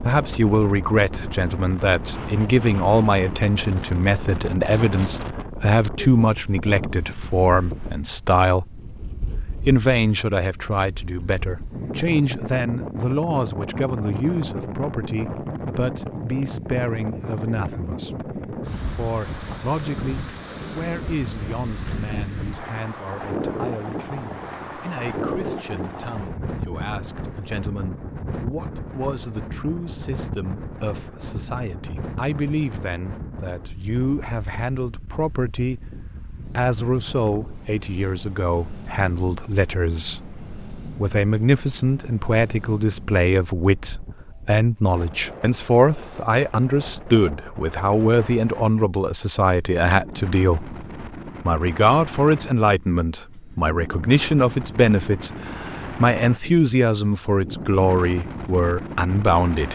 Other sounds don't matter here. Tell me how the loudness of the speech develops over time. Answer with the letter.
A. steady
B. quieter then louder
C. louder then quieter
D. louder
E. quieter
B.